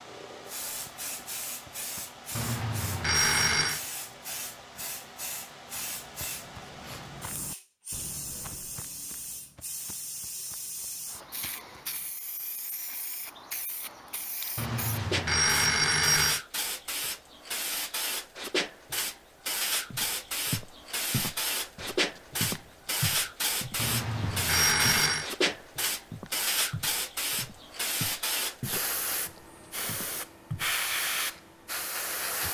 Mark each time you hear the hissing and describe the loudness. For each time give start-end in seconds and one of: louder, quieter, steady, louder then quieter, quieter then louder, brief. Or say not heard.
0.0-32.4 louder.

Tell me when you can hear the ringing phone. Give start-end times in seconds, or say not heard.
2.4-3.8, 14.6-16.4, 23.8-25.3.